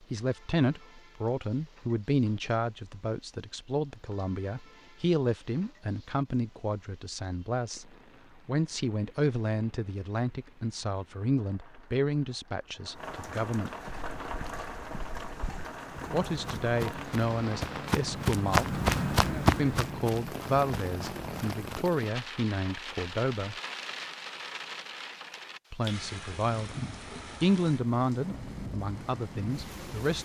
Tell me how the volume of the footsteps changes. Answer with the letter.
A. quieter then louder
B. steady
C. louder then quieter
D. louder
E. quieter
C.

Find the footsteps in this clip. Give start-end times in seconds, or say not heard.
13.8-21.9.